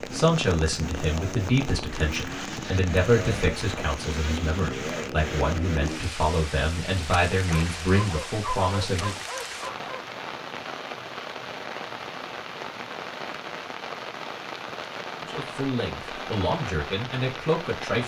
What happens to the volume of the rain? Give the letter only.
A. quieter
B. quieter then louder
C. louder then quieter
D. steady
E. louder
D.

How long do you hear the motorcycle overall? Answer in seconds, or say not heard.
6 s.